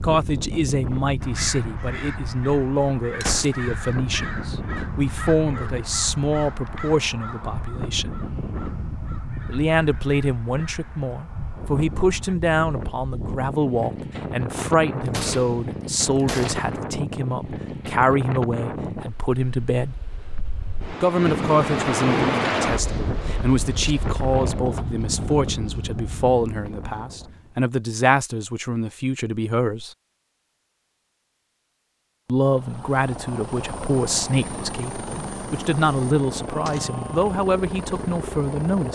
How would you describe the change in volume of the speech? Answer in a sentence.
The volume of the speech stays about the same.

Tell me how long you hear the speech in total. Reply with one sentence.
The speech can be heard for 34 seconds in total.